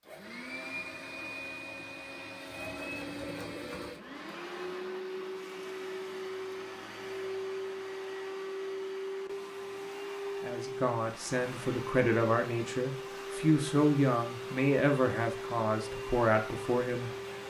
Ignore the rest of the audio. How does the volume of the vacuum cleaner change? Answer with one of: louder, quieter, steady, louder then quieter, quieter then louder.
steady.